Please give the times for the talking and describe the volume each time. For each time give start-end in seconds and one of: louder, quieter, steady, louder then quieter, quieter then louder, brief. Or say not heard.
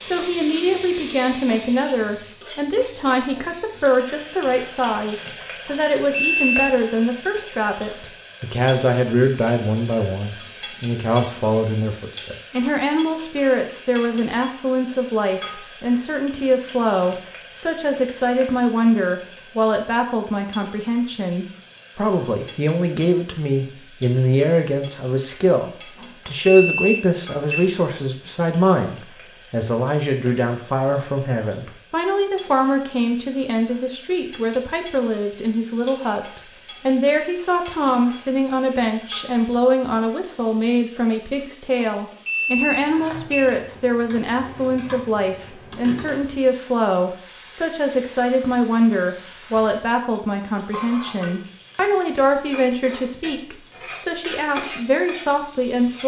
0.0-56.0 steady.